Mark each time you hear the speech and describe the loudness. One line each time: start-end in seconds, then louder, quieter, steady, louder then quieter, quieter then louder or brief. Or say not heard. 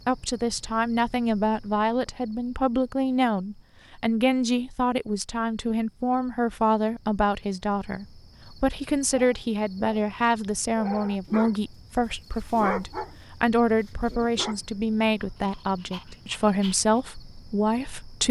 0.1-18.2 steady.